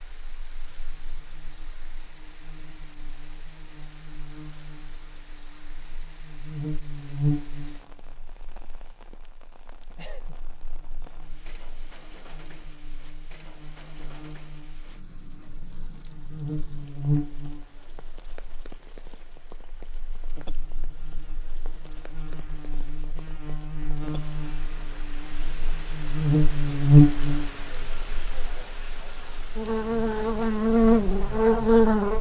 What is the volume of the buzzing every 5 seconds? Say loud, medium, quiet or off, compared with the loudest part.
quiet, quiet, quiet, quiet, quiet, loud, loud.